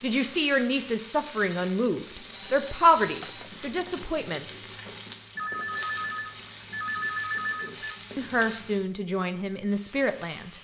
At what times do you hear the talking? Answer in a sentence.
You can hear the talking from 0.0 to 4.6 s and from 7.6 to 10.5 s.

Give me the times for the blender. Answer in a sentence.
The blender can't be heard in this clip.